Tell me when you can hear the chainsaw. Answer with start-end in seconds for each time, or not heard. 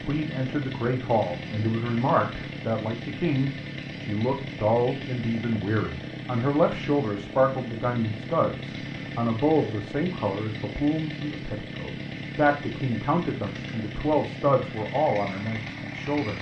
0.0-16.3.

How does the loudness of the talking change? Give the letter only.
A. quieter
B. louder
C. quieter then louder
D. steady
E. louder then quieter
D.